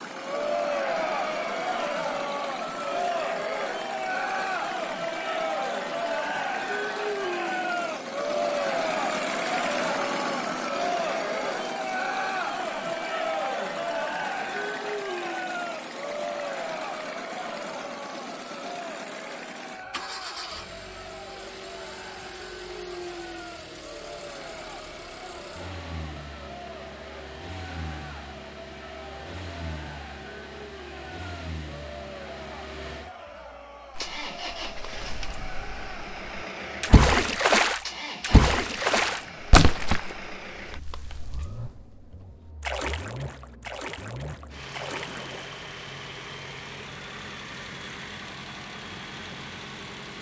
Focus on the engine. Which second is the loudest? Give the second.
10 s.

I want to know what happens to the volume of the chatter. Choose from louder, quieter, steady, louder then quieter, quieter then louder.
quieter.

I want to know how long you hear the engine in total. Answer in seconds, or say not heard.
50 s.